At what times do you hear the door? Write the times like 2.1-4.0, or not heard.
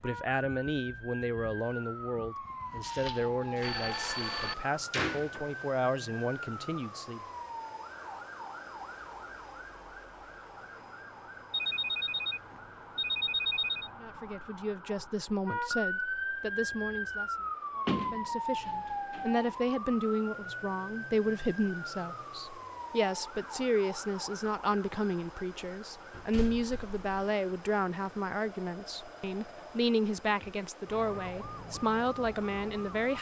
3.5-5.5, 17.9-19.5, 26.1-27.2.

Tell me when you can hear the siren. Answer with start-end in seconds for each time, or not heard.
0.0-33.1.